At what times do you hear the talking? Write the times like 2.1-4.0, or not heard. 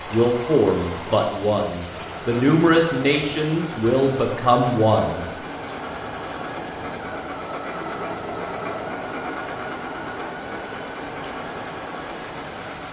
0.1-5.2.